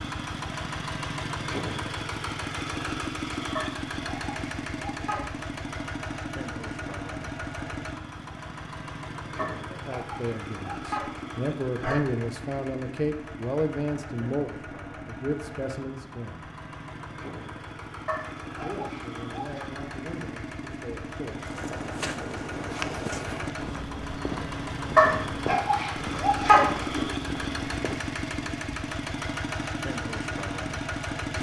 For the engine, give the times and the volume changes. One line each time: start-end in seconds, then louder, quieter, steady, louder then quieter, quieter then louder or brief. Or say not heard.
0.0-31.3 quieter then louder.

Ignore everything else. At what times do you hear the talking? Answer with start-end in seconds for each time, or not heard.
9.7-16.4, 18.6-21.5.